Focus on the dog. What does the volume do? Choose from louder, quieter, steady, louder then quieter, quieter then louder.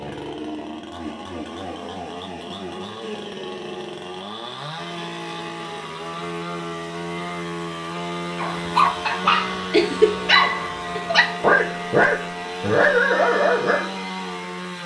steady.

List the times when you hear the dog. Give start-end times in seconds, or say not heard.
8.3-13.8.